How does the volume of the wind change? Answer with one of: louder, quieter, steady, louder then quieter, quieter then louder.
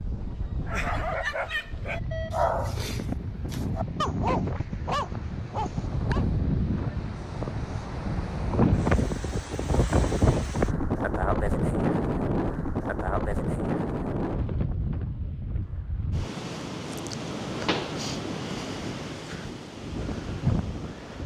louder then quieter.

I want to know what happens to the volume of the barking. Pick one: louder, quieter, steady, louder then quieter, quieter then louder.
quieter then louder.